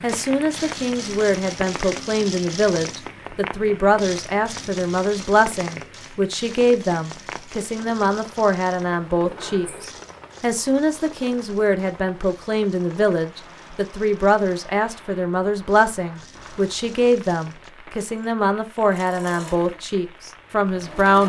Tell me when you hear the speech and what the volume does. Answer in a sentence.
You can hear the speech from 0.0 to 21.2 s, at a steady volume.